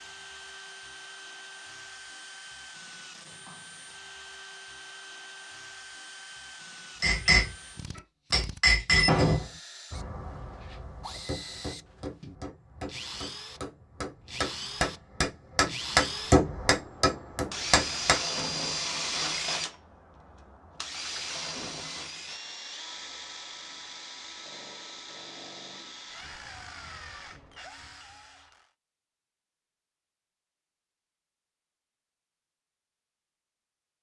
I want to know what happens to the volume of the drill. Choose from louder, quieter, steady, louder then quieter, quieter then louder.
louder then quieter.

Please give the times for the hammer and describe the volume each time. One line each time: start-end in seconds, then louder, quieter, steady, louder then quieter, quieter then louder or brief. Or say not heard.
7.0-7.5 brief
8.3-18.2 quieter then louder.